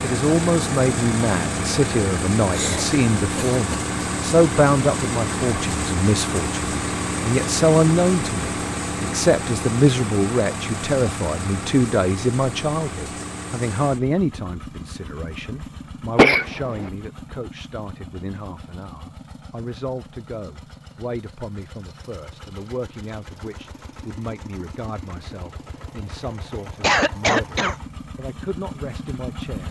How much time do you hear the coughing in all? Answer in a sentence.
The coughing can be heard for 3 seconds in total.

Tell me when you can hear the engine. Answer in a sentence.
The engine can be heard from 0.0 to 29.6 s.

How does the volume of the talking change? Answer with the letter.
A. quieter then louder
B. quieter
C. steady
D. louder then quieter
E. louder
B.